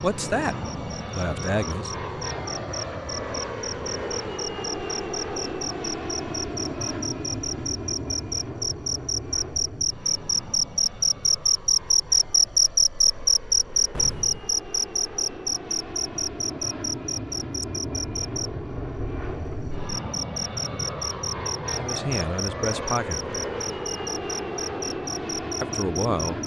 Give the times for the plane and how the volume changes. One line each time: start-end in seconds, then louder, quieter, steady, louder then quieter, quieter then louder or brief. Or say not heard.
0.0-26.4 quieter then louder.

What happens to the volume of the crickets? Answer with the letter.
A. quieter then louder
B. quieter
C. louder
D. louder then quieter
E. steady
D.